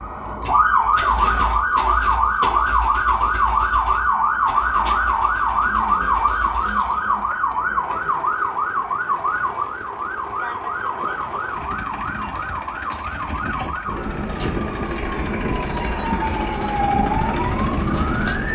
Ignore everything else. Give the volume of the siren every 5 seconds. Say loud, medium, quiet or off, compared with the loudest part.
loud, loud, medium, medium.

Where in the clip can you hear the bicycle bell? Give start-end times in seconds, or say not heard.
not heard.